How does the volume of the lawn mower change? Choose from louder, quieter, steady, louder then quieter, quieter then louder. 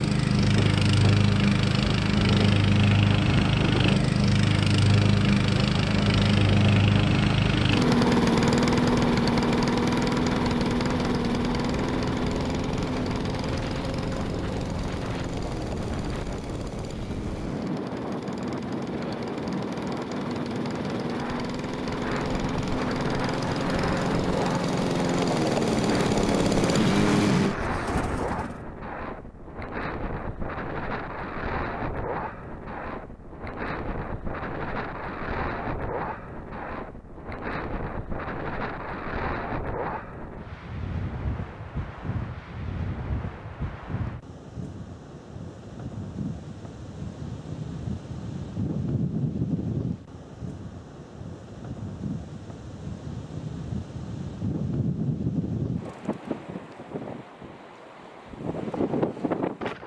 quieter then louder.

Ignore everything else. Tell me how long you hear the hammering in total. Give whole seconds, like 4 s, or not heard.
not heard.